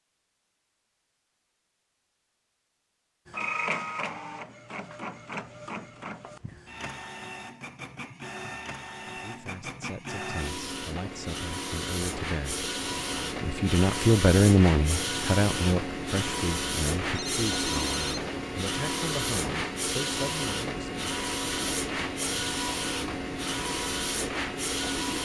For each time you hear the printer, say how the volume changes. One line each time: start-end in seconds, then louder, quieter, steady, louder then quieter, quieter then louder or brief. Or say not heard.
3.2-25.2 louder.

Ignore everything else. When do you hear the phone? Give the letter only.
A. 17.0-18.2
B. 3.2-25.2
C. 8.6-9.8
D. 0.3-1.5
A.